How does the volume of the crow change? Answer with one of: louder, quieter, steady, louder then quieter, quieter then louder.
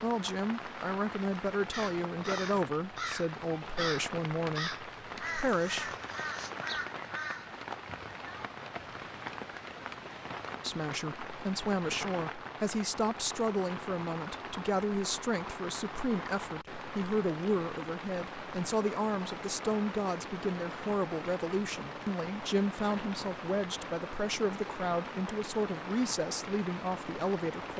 steady.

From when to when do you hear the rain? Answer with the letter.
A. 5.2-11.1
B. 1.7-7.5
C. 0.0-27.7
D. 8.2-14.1
C.